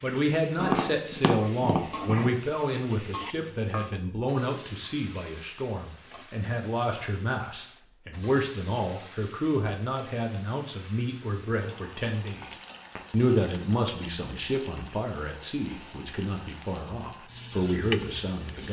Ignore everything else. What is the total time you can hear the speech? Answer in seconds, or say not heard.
18 s.